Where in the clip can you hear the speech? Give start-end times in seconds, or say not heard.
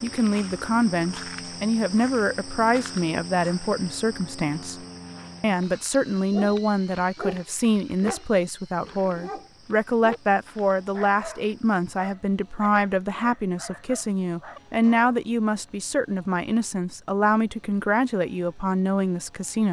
0.0-4.8, 5.4-19.6.